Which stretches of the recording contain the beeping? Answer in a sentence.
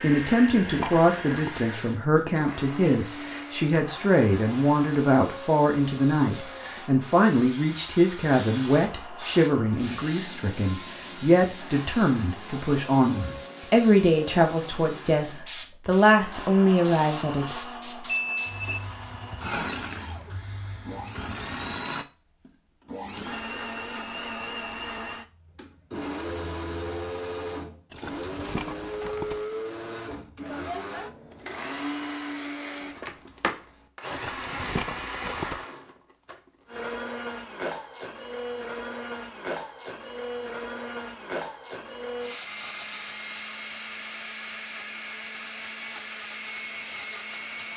You can hear the beeping from 18.1 to 18.9 s.